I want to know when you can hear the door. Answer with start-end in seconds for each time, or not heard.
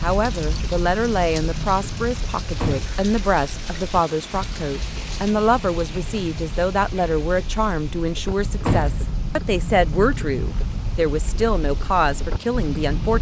2.6-3.6, 8.7-9.1.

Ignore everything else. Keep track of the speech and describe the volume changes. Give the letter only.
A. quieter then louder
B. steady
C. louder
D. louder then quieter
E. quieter
B.